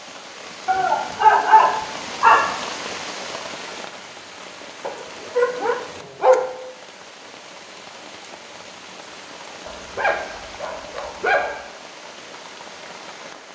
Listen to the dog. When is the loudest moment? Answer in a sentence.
The volume of the dog peaks at 1 second.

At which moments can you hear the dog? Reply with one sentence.
The dog can be heard from 0.7 to 2.6 s, from 4.8 to 6.5 s and from 9.7 to 11.6 s.